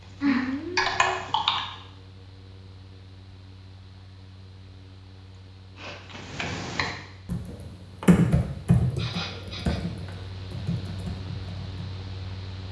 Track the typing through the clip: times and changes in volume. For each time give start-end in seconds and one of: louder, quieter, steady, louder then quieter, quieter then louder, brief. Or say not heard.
0.0-1.6 brief
6.2-11.8 louder then quieter.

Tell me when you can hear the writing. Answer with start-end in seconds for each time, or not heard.
not heard.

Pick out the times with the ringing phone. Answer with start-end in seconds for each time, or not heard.
0.2-1.0.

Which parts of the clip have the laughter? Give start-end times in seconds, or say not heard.
not heard.